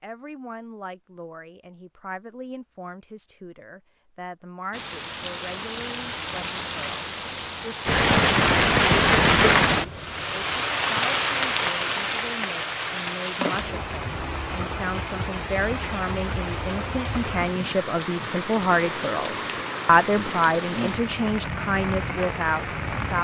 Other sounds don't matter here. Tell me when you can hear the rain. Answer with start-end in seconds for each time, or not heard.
4.7-23.1.